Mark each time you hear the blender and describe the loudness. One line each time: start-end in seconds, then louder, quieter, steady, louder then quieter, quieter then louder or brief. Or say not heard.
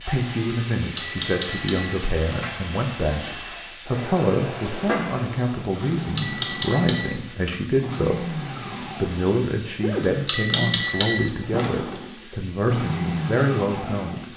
0.0-14.3 louder.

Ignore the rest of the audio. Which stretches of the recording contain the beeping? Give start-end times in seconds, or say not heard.
0.8-2.4, 6.0-7.5, 9.9-11.7.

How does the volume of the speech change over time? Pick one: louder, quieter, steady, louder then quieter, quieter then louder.
steady.